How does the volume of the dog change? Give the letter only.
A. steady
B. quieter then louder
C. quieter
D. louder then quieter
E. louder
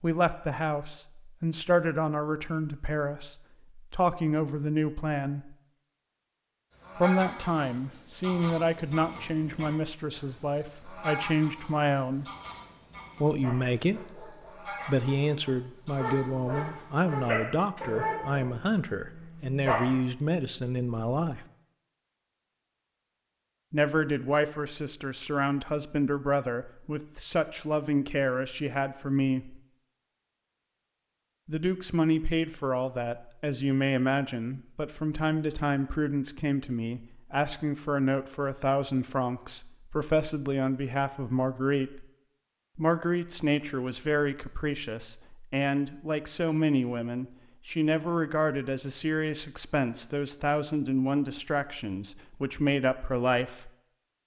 D.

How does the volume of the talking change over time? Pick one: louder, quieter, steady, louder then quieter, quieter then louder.
steady.